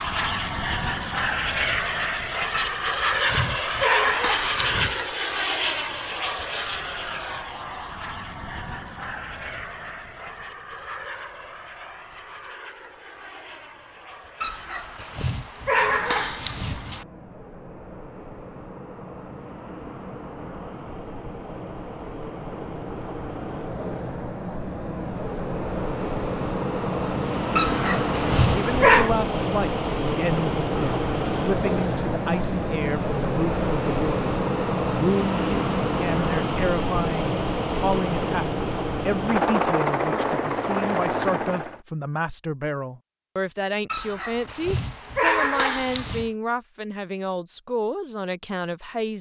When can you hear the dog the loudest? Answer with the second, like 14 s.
29 s.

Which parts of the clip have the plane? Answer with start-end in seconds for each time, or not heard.
0.0-41.8.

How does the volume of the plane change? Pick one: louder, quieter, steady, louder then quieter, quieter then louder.
quieter then louder.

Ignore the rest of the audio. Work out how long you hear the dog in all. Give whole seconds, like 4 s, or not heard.
9 s.